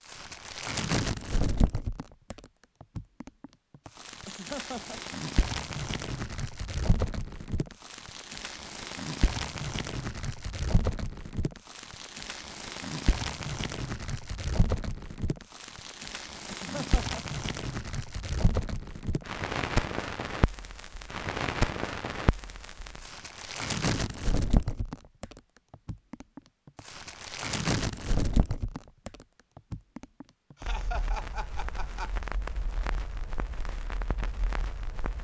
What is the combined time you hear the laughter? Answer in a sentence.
The laughter can be heard for 3 seconds in total.